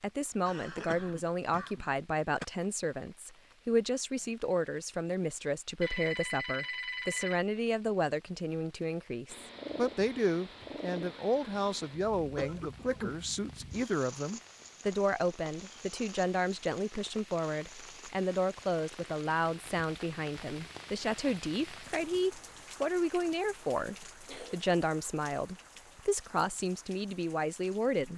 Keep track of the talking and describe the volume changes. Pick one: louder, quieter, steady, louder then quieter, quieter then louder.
steady.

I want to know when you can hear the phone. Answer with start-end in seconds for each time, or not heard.
5.8-7.4.